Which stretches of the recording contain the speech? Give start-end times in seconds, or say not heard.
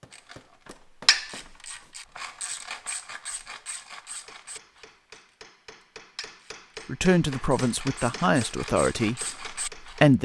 6.8-10.1.